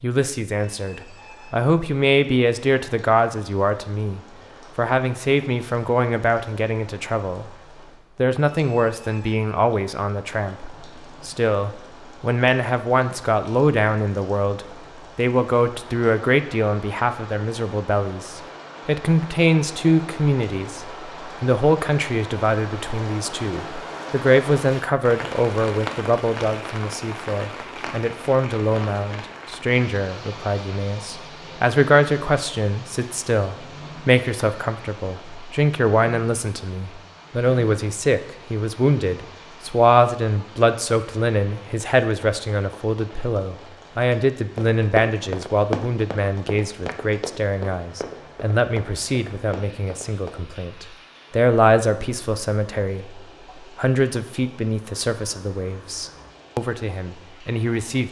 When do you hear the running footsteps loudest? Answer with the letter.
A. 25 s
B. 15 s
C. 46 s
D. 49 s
C.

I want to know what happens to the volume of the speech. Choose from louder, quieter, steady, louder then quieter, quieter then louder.
steady.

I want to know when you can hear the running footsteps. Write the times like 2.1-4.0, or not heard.
44.5-50.4.